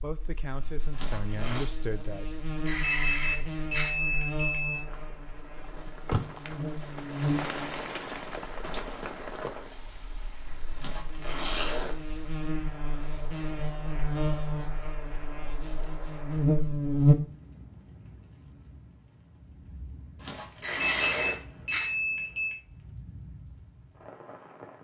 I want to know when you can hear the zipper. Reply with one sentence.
You can hear the zipper from 0.9 to 1.6 s, from 10.8 to 11.9 s and from 20.1 to 21.4 s.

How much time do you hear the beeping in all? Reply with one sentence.
You can hear the beeping for 4 seconds altogether.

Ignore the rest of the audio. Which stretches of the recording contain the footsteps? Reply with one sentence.
You can't hear the footsteps here.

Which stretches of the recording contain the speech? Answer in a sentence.
The speech can be heard from 0.0 to 2.5 s.